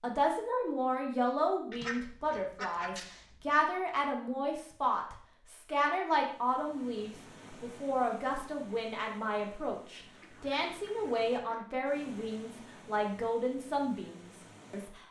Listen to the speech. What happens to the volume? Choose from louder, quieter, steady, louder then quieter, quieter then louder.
steady.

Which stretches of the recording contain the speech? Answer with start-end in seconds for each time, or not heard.
0.0-15.0.